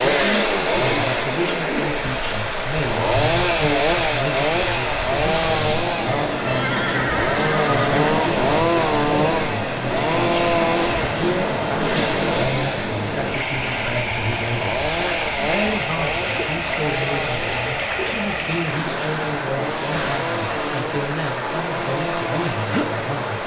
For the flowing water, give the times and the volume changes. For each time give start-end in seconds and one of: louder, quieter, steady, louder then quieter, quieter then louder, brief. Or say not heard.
0.0-23.4 steady.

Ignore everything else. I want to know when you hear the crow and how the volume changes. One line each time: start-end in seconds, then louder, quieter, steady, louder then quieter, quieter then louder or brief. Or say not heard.
not heard.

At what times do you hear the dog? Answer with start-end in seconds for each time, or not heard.
not heard.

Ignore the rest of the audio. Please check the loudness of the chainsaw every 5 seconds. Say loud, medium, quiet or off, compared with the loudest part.
loud, loud, loud, medium, medium.